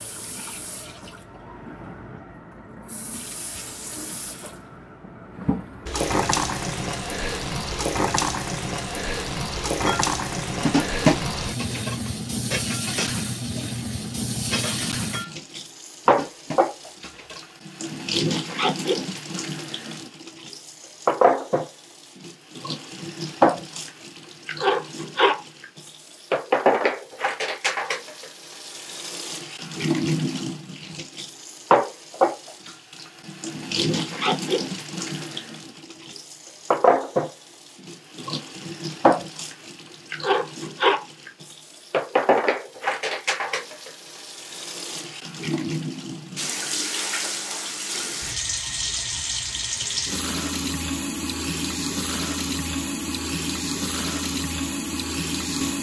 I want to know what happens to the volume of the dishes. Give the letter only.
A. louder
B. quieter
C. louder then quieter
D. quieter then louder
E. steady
B.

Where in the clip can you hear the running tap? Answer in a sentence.
You can hear the running tap from 0.0 to 55.7 s.